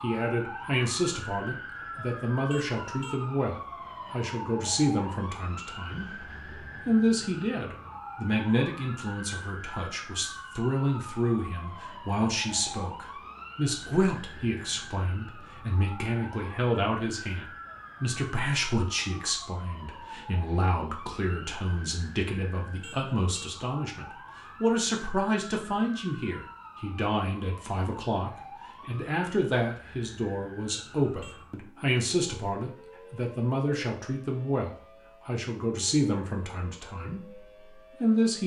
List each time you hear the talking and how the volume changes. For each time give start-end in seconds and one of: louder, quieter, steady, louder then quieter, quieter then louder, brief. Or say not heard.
0.0-38.4 steady.